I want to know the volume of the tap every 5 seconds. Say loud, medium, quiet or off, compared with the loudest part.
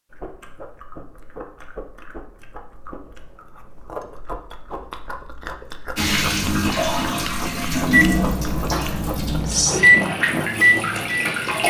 off, loud, loud.